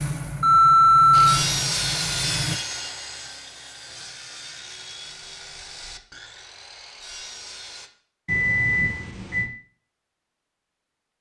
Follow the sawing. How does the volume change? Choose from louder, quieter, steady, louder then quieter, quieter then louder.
quieter.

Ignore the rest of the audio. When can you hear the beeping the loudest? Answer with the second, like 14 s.
1 s.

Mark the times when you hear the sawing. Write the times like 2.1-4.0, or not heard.
1.1-7.9.